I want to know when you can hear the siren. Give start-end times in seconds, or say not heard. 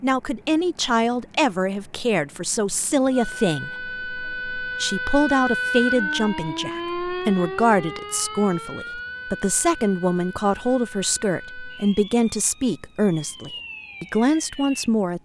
3.1-14.9.